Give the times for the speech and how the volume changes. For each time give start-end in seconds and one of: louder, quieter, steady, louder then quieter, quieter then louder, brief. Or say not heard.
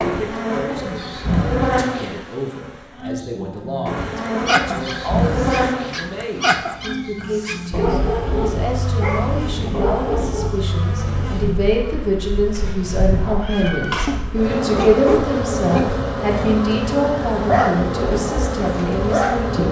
0.0-19.6 louder.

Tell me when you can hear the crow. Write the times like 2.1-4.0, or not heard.
not heard.